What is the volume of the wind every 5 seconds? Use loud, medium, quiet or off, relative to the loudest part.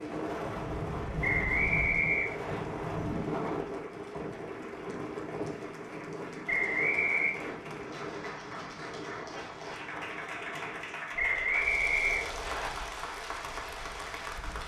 loud, medium, quiet.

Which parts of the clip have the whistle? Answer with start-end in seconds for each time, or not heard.
1.2-2.6, 6.5-7.3, 11.2-12.7.